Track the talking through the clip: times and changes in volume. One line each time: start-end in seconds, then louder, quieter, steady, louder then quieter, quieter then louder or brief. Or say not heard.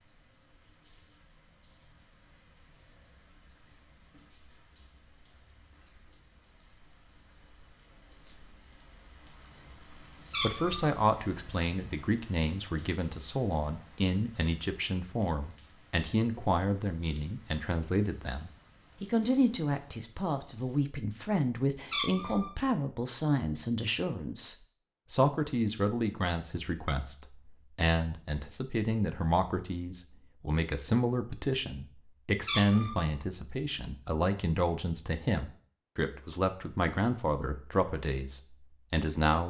10.4-39.4 steady.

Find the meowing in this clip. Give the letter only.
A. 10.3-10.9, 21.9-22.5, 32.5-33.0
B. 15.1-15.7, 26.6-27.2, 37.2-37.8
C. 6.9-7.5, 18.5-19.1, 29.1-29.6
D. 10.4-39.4
A.